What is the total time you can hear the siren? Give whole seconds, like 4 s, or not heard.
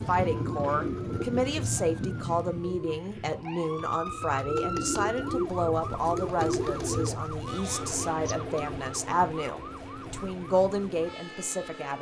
12 s.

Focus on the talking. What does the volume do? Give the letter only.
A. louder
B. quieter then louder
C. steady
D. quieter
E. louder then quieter
C.